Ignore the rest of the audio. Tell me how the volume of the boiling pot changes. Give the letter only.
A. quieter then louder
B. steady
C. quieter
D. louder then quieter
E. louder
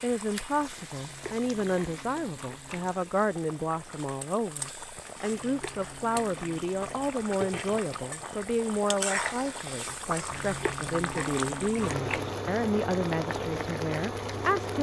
E.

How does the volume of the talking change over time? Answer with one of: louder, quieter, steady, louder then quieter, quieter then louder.
steady.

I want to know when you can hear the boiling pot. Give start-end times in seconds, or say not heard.
0.0-14.7.